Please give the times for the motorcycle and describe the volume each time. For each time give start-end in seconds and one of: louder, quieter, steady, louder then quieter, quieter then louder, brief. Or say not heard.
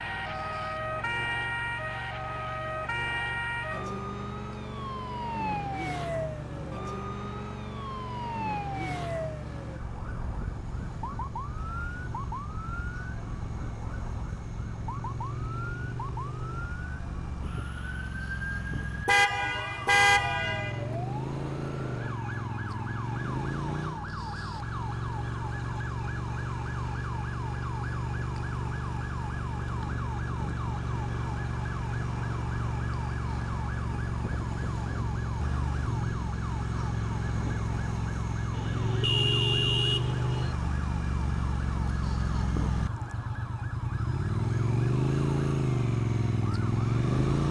0.0-47.4 louder.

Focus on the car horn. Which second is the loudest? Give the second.
20 s.